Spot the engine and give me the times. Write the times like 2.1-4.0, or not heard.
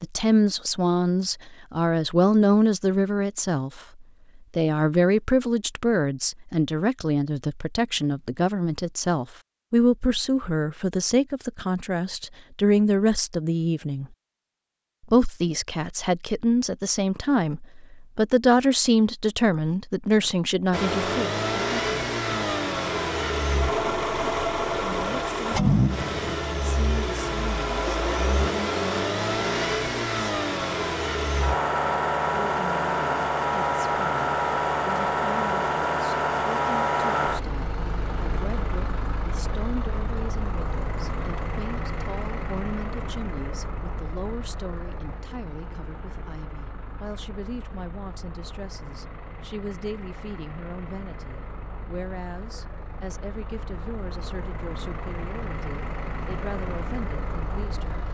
20.7-58.0.